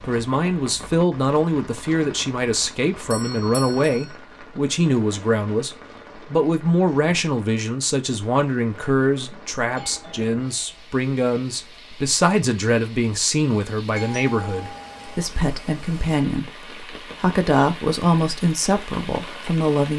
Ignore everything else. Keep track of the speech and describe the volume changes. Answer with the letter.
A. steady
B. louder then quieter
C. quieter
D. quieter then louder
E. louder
A.